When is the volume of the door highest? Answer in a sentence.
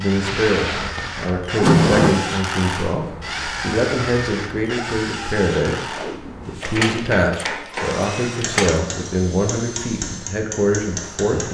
The volume of the door peaks at 2 seconds.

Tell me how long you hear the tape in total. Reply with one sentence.
You can hear the tape for 2 seconds altogether.